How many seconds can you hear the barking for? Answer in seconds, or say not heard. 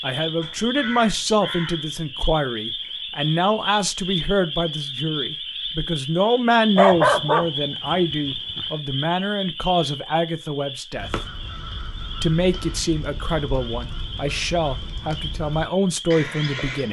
2 s.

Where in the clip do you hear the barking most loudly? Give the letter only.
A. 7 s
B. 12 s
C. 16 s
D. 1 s
A.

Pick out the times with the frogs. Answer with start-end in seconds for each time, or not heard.
0.0-16.6.